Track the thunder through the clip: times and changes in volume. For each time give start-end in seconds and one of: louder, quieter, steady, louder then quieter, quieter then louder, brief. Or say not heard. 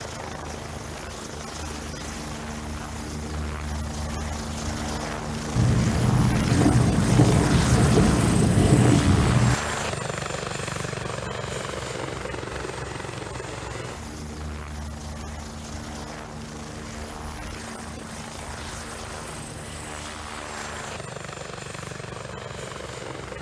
5.5-9.6 steady.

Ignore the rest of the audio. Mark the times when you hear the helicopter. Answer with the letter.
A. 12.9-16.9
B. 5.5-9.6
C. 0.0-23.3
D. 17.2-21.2
C.